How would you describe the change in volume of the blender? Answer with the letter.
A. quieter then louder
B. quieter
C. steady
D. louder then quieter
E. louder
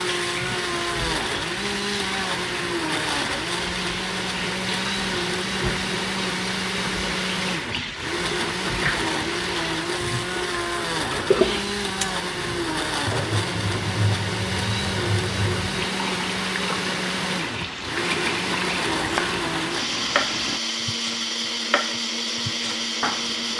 C.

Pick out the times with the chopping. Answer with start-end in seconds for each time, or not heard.
18.9-19.4, 20.1-23.5.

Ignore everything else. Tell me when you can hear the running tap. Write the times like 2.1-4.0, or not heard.
0.0-20.6.